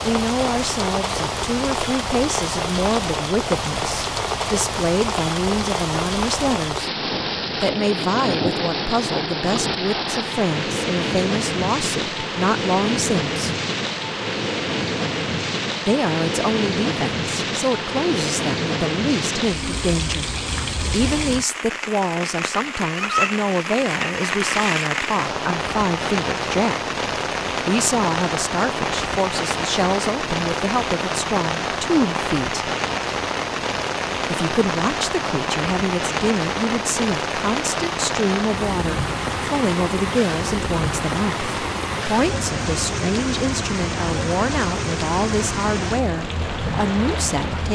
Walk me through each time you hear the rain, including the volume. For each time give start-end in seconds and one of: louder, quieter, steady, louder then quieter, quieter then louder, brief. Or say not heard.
0.0-47.7 steady.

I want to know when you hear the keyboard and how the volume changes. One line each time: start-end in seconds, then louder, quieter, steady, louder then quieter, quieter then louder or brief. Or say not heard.
not heard.